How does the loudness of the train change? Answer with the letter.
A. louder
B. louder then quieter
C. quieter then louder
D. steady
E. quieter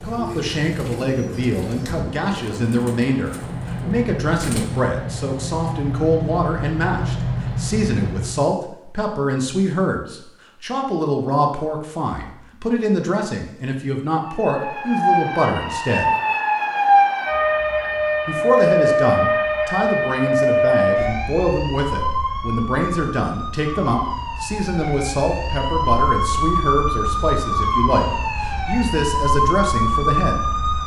A.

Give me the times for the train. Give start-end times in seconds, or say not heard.
0.0-8.6.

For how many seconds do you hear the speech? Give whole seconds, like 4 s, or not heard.
28 s.